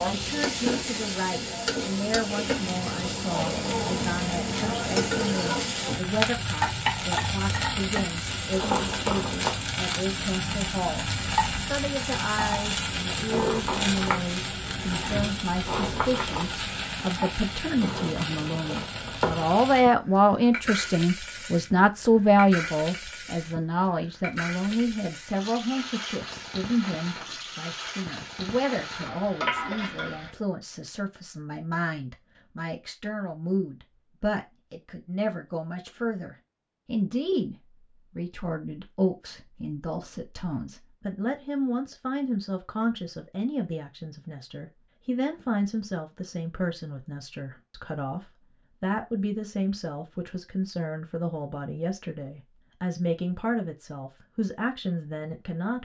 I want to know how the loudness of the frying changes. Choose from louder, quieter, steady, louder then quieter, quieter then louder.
quieter.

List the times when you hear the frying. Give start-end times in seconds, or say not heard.
0.0-30.3.